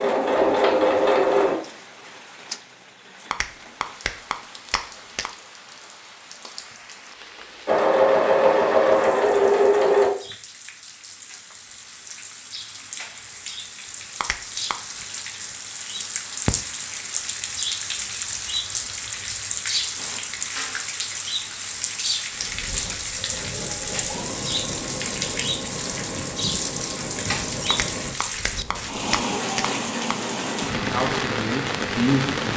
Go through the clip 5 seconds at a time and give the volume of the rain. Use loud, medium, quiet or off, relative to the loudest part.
quiet, quiet, medium, loud, loud, loud, loud.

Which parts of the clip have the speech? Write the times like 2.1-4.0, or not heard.
30.9-32.5.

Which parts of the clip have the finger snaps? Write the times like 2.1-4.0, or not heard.
3.3-5.3, 14.2-14.8, 27.7-30.3.